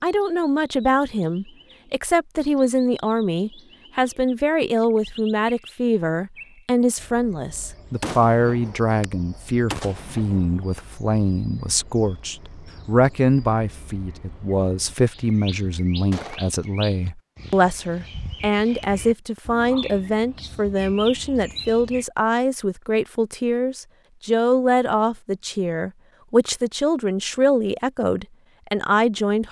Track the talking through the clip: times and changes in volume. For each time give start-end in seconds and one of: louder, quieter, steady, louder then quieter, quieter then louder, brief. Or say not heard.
0.0-29.4 steady.